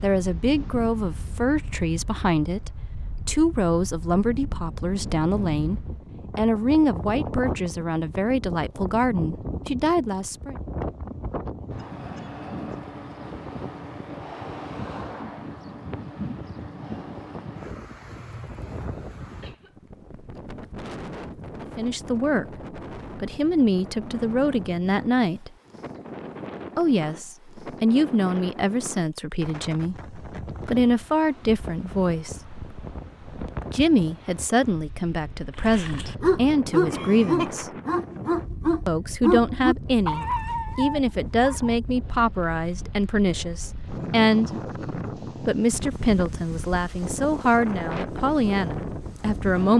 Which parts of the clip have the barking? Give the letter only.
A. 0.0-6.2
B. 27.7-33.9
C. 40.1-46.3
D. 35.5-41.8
D.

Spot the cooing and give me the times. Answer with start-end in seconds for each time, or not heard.
not heard.